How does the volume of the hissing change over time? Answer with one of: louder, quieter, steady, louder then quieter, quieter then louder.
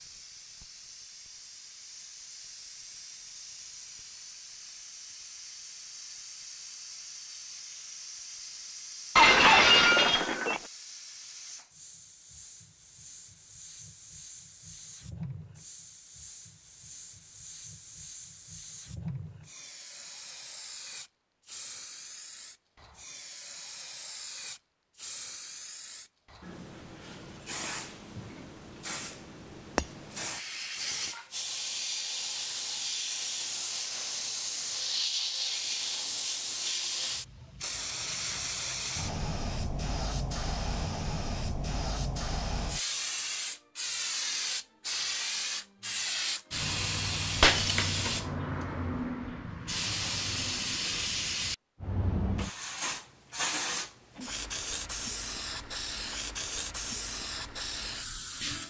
louder.